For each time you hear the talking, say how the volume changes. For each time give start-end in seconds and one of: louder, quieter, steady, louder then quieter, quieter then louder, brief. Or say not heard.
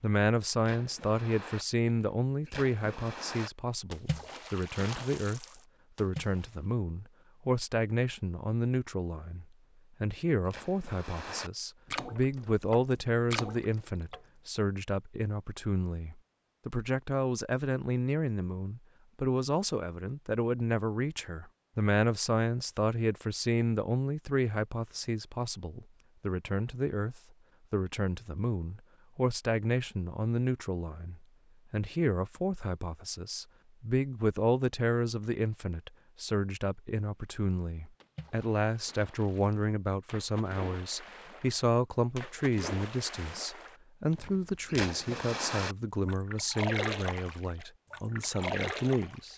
0.0-49.3 steady.